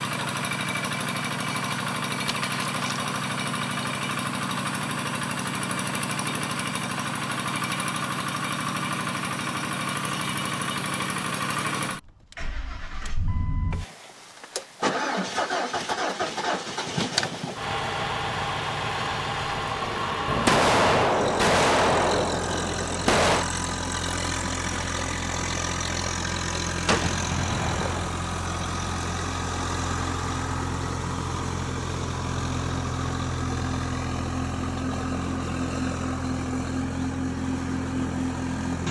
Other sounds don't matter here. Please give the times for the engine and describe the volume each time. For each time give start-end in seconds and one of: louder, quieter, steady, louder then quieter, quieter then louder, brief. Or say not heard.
0.0-38.8 steady.